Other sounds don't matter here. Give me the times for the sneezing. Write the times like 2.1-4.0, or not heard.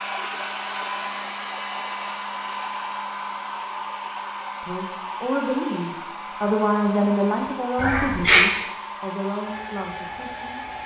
7.8-8.4.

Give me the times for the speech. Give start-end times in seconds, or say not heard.
4.6-10.6.